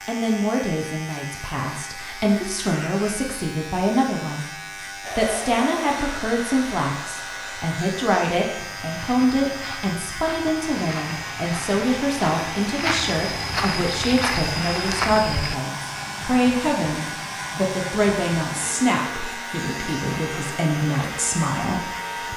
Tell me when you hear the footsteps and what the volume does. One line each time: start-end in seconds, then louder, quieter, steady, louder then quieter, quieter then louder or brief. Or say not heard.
8.6-15.6 louder.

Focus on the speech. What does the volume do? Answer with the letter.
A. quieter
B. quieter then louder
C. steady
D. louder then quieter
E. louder
C.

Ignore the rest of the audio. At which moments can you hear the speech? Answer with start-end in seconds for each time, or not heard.
0.1-22.3.